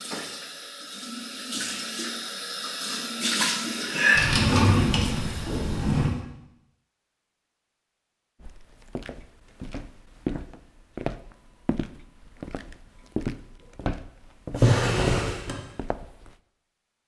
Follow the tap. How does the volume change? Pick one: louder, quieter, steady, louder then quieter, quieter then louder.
louder then quieter.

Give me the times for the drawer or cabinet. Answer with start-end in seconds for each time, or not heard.
4.2-6.1, 14.5-15.6.